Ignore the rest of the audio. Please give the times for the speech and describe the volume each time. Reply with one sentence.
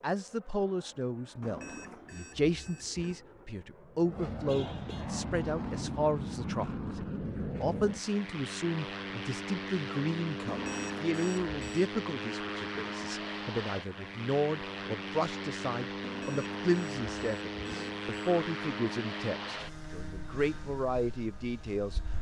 You can hear the speech from 0.0 to 22.0 s, at a steady volume.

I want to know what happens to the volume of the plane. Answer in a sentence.
The loudness of the plane goes up.